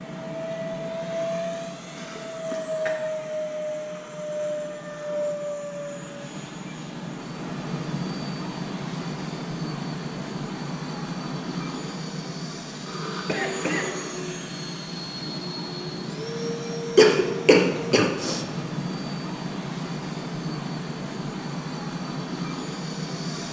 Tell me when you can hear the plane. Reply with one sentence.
The plane can be heard from 0.0 to 23.4 s.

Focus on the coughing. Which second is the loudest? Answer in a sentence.
The volume of the coughing peaks at 17 seconds.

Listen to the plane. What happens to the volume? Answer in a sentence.
The loudness of the plane stays about the same.